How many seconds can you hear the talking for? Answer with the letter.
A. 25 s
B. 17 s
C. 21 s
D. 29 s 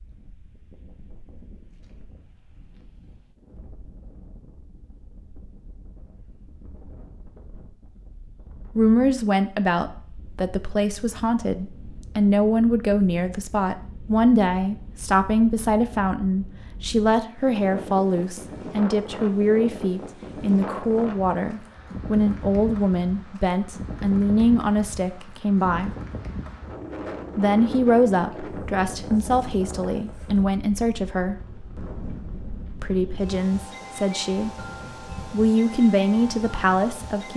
A.